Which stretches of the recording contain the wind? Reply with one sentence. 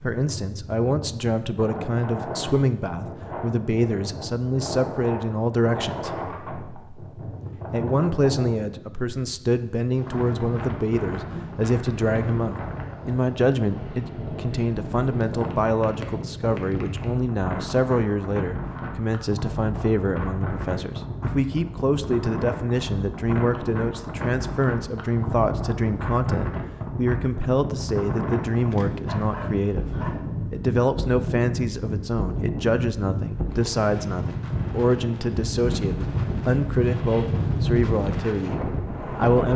You can hear the wind from 0.0 to 39.5 s.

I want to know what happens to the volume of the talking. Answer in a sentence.
The loudness of the talking stays about the same.